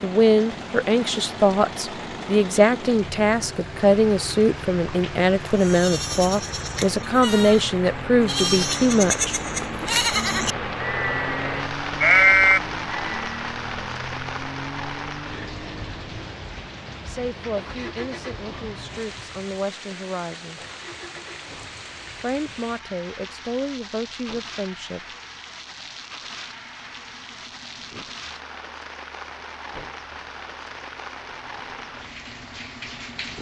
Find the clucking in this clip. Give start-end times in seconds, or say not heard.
not heard.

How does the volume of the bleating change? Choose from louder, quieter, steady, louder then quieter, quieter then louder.
louder.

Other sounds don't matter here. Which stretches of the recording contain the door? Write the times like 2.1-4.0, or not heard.
not heard.